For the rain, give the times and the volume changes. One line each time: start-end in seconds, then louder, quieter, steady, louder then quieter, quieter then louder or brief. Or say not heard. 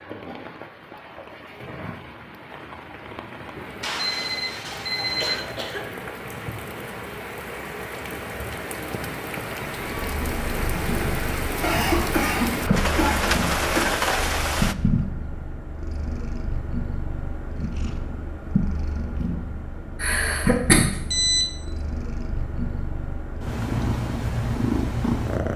0.0-14.8 louder.